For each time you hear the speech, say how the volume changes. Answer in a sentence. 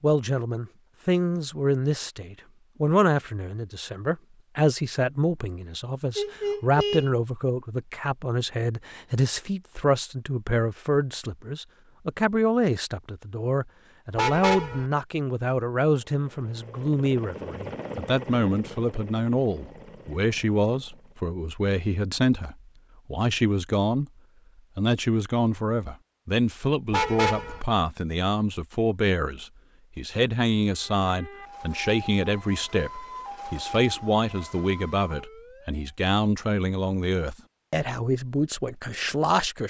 The speech can be heard from 0.0 to 24.1 s, at a steady volume; and from 24.8 to 39.6 s, at a steady volume.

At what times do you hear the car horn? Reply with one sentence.
You can hear the car horn from 6.2 to 7.1 s, from 14.2 to 14.8 s and from 26.9 to 27.6 s.